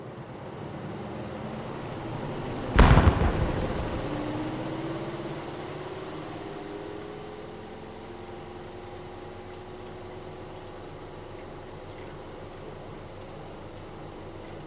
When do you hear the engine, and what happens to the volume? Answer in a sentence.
You can hear the engine from 0.0 to 14.6 s, getting quieter.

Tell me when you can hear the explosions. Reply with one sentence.
You can hear the explosions from 2.8 to 3.8 s.